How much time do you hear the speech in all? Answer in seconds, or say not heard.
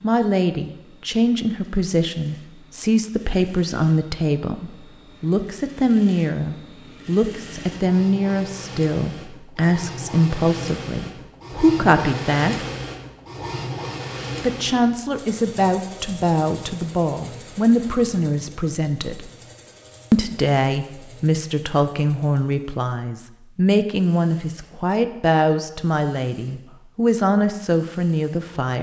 26 s.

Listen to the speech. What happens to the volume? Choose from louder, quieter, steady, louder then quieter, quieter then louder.
steady.